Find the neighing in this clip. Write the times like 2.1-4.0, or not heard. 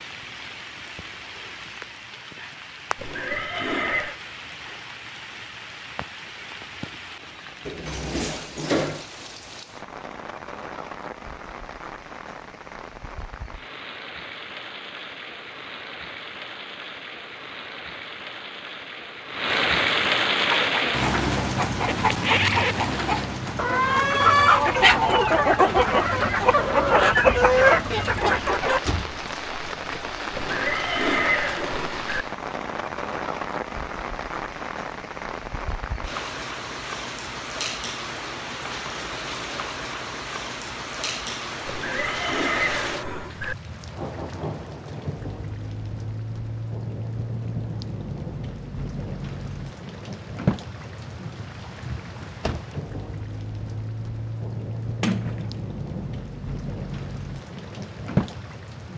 3.0-4.2, 30.3-32.2, 41.6-43.5.